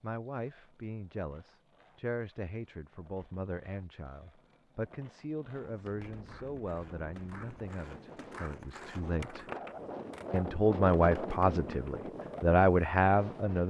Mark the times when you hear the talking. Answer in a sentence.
You can hear the talking from 0.0 to 9.4 s and from 10.3 to 13.6 s.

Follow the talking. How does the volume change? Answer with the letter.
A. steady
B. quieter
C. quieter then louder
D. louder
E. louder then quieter
D.